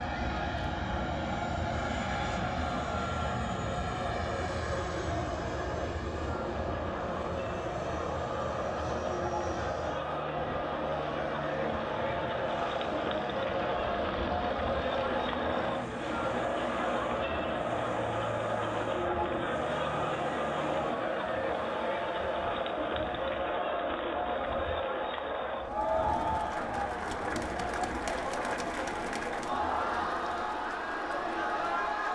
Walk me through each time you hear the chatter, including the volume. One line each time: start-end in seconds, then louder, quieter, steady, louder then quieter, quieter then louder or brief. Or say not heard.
0.0-32.1 louder.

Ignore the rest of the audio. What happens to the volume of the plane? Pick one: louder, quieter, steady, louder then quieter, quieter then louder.
quieter.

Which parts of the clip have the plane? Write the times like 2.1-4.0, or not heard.
0.0-21.0.